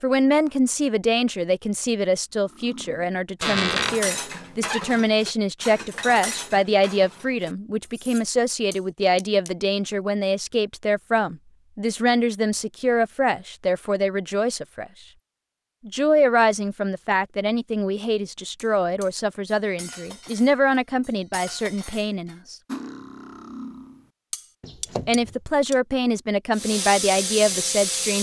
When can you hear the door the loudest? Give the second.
4 s.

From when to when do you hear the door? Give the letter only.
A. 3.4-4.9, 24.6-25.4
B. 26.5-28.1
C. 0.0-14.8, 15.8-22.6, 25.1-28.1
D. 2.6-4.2
A.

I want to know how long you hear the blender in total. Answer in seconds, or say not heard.
not heard.